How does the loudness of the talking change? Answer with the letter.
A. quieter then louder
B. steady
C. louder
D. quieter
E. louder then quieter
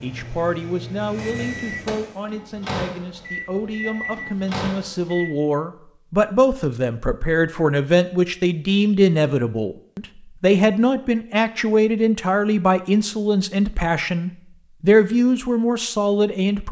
C.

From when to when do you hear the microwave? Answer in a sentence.
You can hear the microwave from 0.0 to 5.3 s.